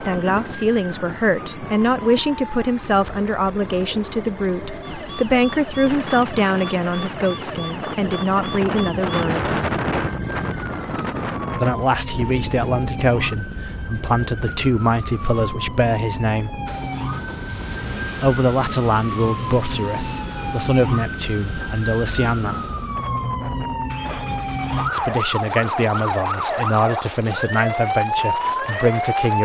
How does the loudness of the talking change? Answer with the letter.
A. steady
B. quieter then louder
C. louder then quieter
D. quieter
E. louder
A.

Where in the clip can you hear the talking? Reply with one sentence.
You can hear the talking from 0.0 to 9.5 s, from 11.6 to 16.6 s, from 18.2 to 22.6 s and from 24.9 to 29.4 s.